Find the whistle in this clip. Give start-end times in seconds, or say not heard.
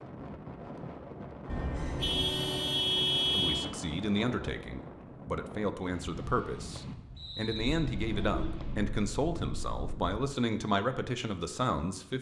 7.2-7.8.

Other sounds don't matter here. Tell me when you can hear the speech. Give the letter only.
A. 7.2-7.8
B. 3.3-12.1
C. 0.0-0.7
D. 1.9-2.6
B.